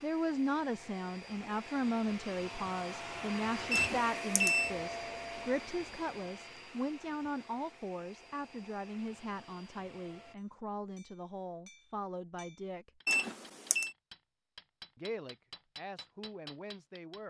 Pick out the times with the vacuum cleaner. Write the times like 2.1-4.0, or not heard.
0.0-10.3.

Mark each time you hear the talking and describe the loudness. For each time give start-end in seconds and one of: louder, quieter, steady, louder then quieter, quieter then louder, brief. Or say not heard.
0.0-12.9 quieter
14.9-17.2 brief.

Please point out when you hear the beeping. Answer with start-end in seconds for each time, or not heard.
3.7-4.7, 13.1-13.9.